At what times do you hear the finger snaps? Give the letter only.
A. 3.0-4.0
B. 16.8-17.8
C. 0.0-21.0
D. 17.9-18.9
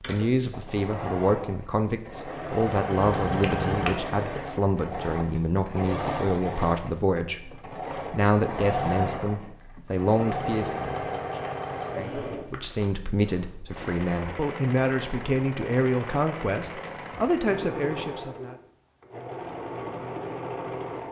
A.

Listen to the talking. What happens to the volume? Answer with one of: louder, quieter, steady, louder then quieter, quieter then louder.
steady.